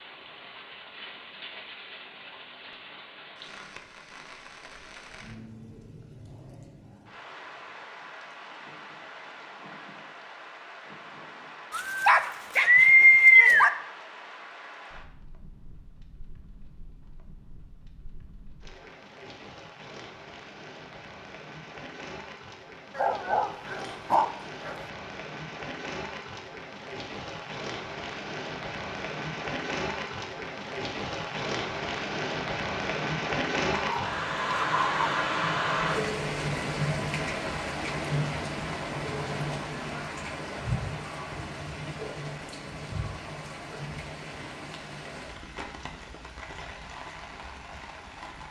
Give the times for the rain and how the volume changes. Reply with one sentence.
The rain can be heard from 0.0 to 48.4 s, getting louder then quieter.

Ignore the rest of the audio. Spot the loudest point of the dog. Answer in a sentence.
The volume of the dog peaks at 13 seconds.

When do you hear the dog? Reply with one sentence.
The dog can be heard from 11.7 to 13.7 s, from 22.9 to 24.8 s and from 33.7 to 35.0 s.